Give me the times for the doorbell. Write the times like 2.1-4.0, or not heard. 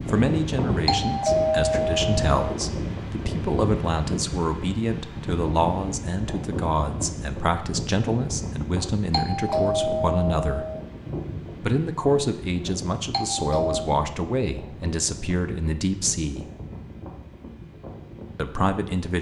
0.8-2.3, 9.1-10.8, 13.1-13.9.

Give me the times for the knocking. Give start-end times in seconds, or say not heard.
not heard.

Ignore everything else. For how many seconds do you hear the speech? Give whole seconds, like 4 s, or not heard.
16 s.